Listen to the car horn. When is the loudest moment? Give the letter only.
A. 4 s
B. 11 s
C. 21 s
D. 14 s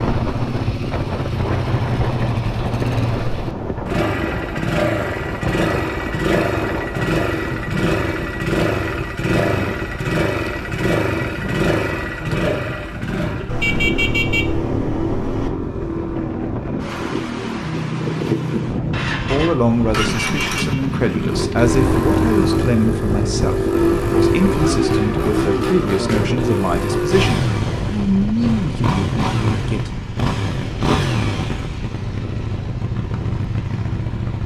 D.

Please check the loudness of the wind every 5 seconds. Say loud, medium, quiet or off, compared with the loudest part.
loud, loud, medium, loud, loud, loud, medium.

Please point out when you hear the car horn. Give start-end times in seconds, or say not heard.
13.4-15.5, 20.1-20.8.